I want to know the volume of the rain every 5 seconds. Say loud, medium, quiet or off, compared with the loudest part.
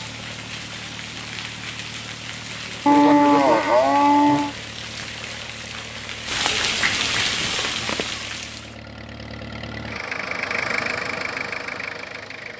medium, loud, off.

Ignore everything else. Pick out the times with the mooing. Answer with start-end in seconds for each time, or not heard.
2.9-4.5.